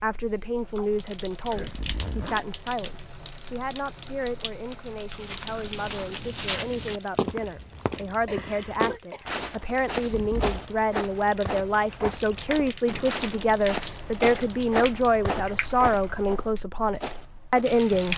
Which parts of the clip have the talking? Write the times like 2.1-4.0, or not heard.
0.0-18.1.